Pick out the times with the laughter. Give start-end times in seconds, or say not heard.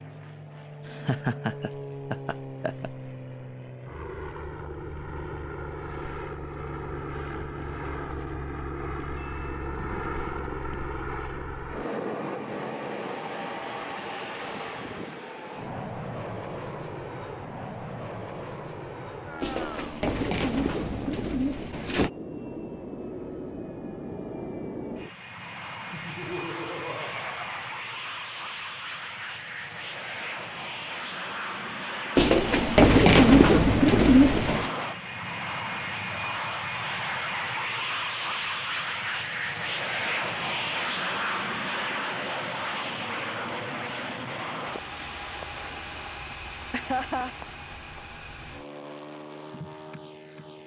0.8-2.9, 25.9-27.9, 46.7-47.3.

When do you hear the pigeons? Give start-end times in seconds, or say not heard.
19.4-22.1, 32.1-34.7.